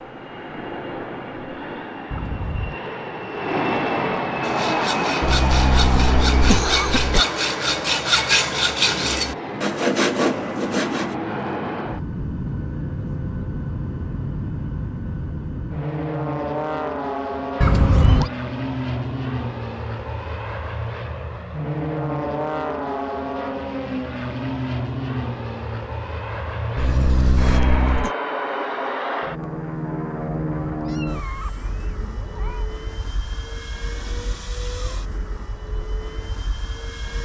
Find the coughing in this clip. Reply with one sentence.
The coughing can be heard from 5.2 to 7.2 s and from 26.8 to 28.1 s.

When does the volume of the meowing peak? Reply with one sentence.
The volume of the meowing peaks at 18 seconds.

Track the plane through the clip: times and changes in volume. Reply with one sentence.
You can hear the plane from 0.0 to 37.1 s, getting quieter.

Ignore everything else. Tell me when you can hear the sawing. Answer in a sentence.
You can hear the sawing from 4.4 to 11.2 s.